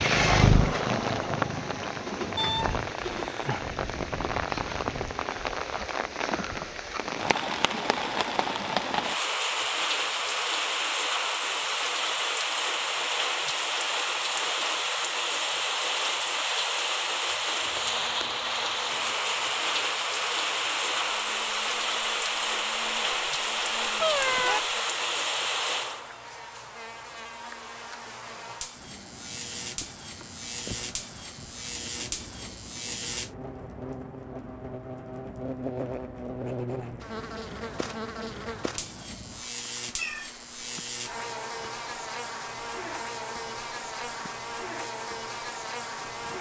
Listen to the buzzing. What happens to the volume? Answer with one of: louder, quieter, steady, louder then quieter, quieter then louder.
louder.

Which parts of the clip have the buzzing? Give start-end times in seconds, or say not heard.
17.6-46.3.